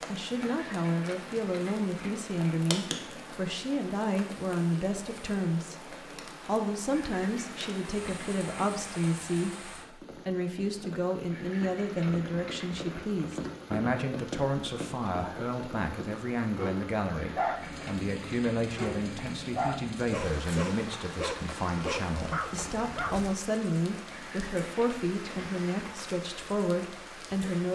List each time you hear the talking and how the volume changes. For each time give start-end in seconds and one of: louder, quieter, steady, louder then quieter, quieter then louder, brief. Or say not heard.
0.1-27.7 steady.